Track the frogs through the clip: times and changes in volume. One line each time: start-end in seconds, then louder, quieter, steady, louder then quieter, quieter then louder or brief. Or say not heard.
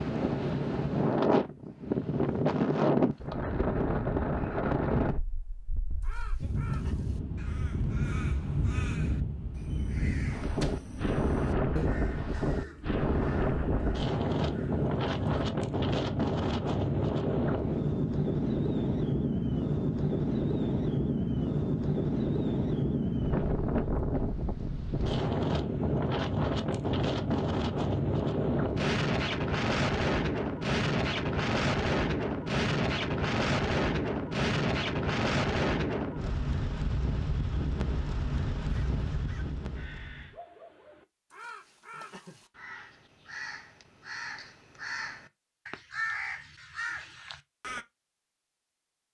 not heard.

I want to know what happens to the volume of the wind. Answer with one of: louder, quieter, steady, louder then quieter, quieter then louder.
steady.